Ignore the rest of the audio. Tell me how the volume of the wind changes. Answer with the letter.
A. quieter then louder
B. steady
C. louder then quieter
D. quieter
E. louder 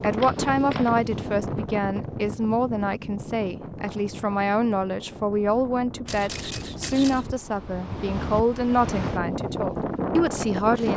A.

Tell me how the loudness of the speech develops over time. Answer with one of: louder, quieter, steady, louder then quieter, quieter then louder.
steady.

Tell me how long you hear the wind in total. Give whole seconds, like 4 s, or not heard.
11 s.